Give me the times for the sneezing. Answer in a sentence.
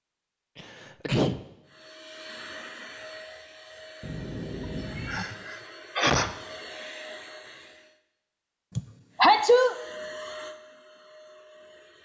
The sneezing can be heard from 0.6 to 1.4 s, from 5.0 to 6.3 s and from 8.8 to 9.8 s.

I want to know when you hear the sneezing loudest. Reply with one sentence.
The loudest moment of the sneezing is at 9 seconds.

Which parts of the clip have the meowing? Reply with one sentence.
The meowing can be heard from 4.0 to 5.2 s.